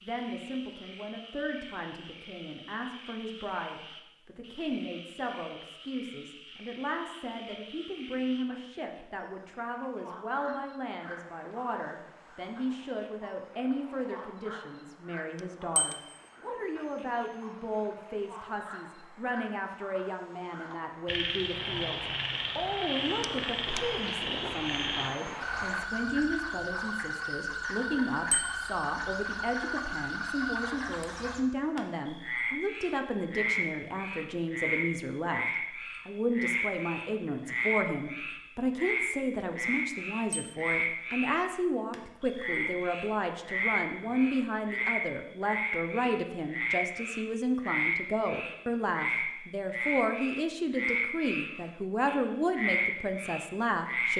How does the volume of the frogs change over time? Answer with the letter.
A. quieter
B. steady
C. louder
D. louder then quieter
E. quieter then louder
C.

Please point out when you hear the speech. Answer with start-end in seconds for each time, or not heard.
0.0-35.5, 36.0-54.1.